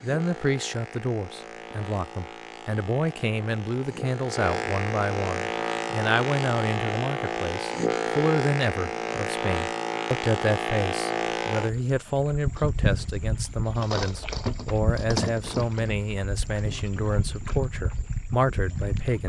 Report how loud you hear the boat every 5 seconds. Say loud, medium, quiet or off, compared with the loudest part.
medium, loud, loud, medium.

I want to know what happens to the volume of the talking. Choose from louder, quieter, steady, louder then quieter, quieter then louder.
steady.